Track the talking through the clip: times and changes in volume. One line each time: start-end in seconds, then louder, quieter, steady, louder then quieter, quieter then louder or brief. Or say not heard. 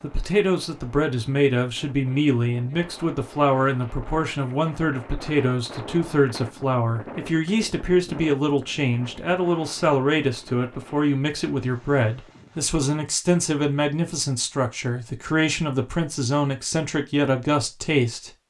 0.0-18.3 steady.